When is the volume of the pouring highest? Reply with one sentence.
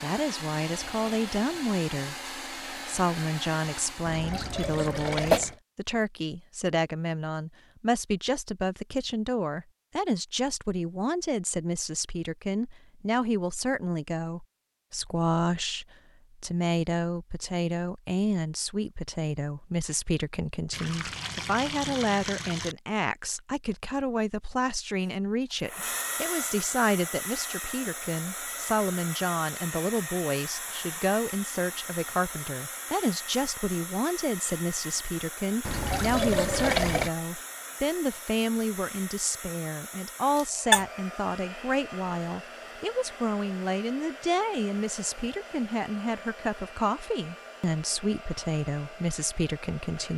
The loudest moment of the pouring is at 37 seconds.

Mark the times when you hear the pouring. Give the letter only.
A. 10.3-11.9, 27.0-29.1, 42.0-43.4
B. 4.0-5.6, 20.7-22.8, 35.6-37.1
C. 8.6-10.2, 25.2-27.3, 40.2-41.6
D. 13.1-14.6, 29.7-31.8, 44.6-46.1
B.